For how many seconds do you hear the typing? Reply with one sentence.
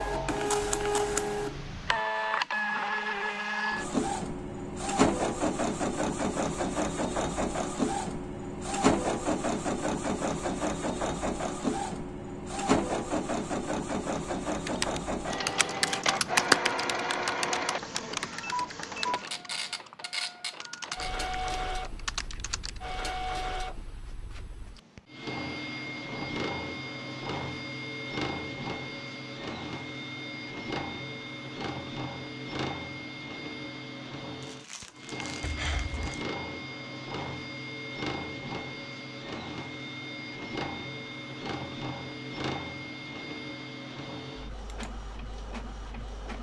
You can hear the typing for 8 seconds altogether.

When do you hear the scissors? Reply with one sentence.
The scissors can be heard from 35.4 to 36.0 s.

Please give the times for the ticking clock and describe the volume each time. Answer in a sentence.
The ticking clock can't be heard in this clip.